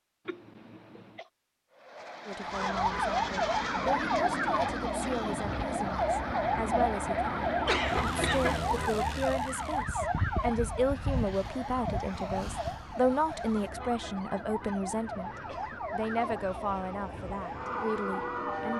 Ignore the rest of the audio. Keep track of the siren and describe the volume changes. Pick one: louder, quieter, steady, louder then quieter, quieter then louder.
quieter.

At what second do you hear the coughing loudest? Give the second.
8 s.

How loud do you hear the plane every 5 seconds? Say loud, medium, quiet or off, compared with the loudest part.
loud, loud, medium, medium.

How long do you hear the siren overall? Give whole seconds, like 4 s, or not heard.
16 s.